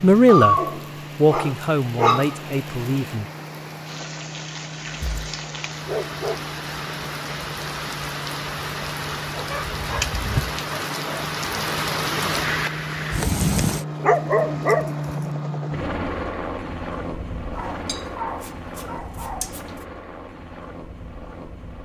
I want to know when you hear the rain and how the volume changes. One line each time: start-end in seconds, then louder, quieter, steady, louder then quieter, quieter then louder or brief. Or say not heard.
0.0-13.8 louder.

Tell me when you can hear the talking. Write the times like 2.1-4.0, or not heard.
0.0-3.2.